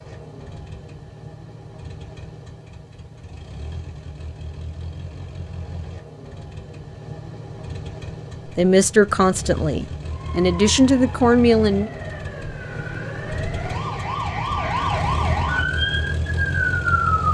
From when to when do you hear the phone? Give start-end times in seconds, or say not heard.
not heard.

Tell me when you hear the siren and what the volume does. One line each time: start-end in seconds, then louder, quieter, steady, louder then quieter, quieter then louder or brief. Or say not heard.
10.1-17.2 louder.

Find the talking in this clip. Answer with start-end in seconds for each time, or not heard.
8.4-11.9.